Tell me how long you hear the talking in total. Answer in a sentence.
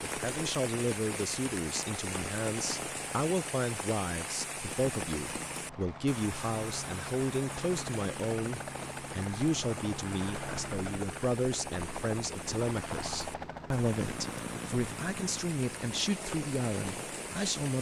You can hear the talking for 18 seconds altogether.